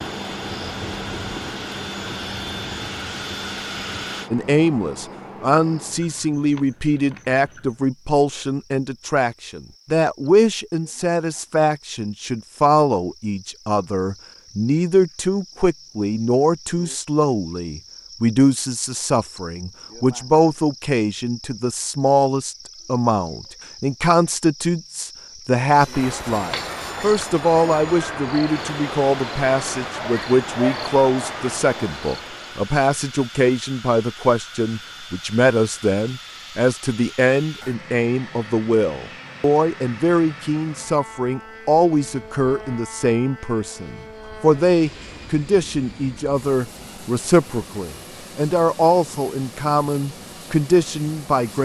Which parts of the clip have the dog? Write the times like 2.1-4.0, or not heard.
not heard.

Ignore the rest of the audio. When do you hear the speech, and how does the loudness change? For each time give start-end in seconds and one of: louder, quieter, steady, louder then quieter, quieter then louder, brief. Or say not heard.
4.3-51.6 steady.